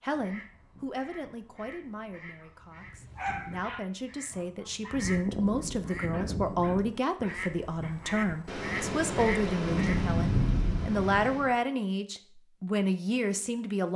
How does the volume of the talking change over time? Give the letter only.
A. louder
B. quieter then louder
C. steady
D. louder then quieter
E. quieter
A.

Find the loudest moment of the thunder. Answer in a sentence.
The loudest moment of the thunder is at 10 seconds.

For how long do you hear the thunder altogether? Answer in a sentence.
You can hear the thunder for 3 seconds altogether.